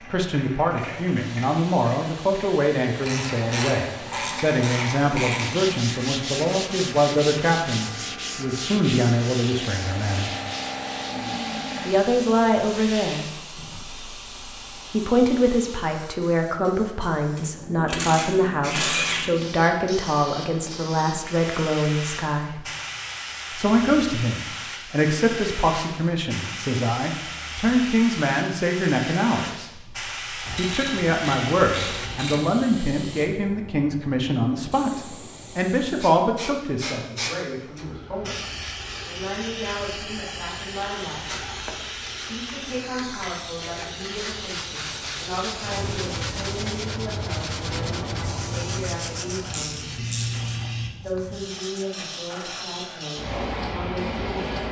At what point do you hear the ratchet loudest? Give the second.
19 s.